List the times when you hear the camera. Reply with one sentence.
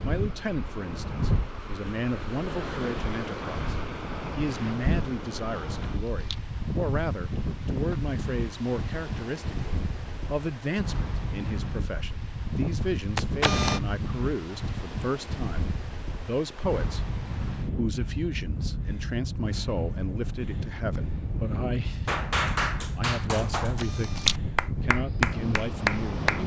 You can hear the camera from 5.8 to 6.4 s, from 13.2 to 13.8 s and from 23.8 to 24.4 s.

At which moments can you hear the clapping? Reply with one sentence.
You can hear the clapping from 22.1 to 26.4 s.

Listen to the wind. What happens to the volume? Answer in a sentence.
The loudness of the wind stays about the same.